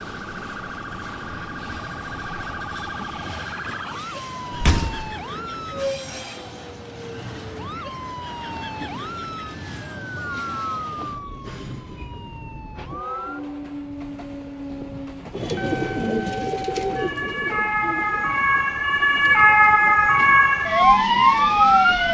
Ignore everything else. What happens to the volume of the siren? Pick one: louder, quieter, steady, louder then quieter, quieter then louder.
louder.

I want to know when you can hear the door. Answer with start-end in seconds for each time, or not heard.
4.5-5.1.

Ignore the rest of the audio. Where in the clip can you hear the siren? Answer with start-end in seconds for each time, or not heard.
0.0-22.0.